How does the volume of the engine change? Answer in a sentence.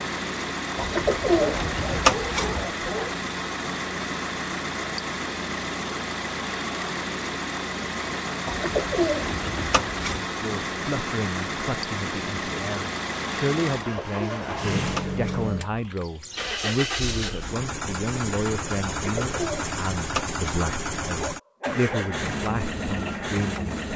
The loudness of the engine stays about the same.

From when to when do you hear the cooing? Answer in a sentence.
The cooing can be heard from 0.8 to 2.6 s, from 8.4 to 10.2 s, from 13.8 to 15.6 s and from 18.9 to 20.7 s.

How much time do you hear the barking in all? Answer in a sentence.
The barking can be heard for 3 seconds in total.